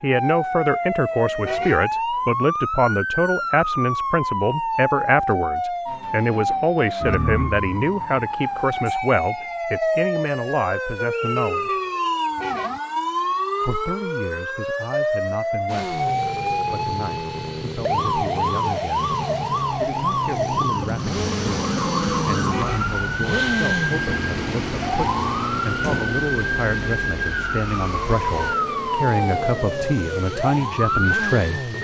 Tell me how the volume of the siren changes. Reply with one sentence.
The loudness of the siren stays about the same.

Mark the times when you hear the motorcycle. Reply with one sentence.
The motorcycle can be heard from 15.7 to 31.8 s.